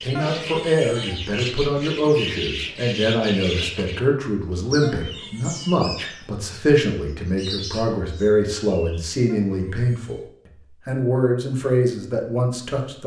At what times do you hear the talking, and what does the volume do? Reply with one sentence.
The talking can be heard from 0.0 to 10.2 s, at a steady volume; and briefly from 10.8 to 13.0 s.